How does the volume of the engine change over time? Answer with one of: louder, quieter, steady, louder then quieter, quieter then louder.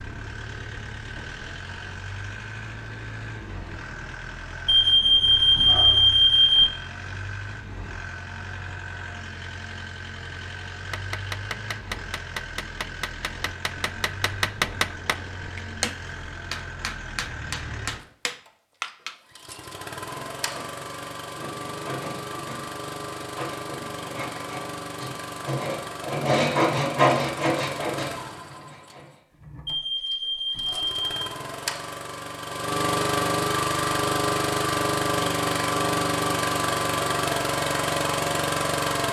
louder.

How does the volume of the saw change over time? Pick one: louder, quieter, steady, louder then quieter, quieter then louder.
louder then quieter.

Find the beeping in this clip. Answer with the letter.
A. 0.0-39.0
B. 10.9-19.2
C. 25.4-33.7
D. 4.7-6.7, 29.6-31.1
D.